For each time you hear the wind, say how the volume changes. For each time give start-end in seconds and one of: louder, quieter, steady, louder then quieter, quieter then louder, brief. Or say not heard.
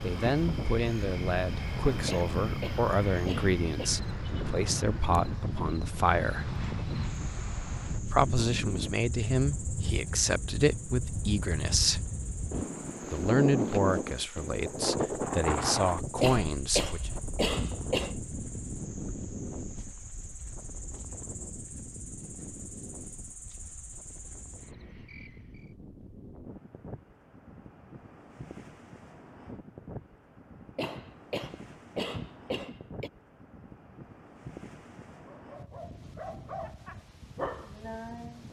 0.0-38.4 quieter.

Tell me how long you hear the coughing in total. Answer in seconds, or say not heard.
6 s.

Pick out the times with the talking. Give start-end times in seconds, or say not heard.
0.0-6.5, 8.0-12.1, 13.1-17.1.